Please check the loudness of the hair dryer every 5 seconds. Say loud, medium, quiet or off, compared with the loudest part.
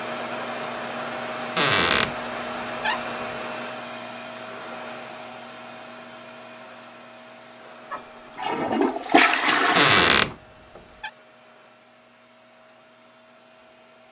loud, medium, quiet.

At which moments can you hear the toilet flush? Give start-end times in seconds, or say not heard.
7.9-10.2.